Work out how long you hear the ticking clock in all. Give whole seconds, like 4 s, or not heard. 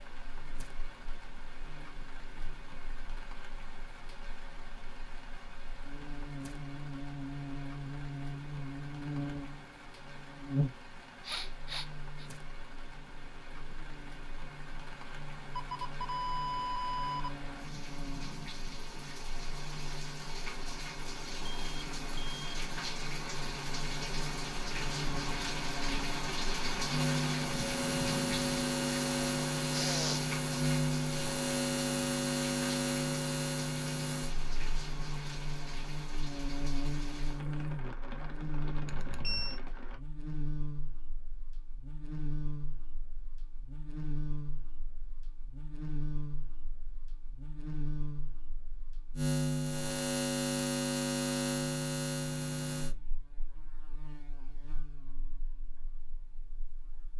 not heard.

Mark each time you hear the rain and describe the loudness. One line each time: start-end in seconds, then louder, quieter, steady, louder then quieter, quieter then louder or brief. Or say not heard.
0.0-40.0 louder then quieter.